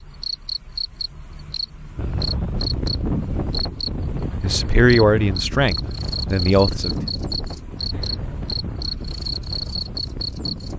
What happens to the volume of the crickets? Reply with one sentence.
The volume of the crickets stays about the same.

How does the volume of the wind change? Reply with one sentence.
The loudness of the wind goes down.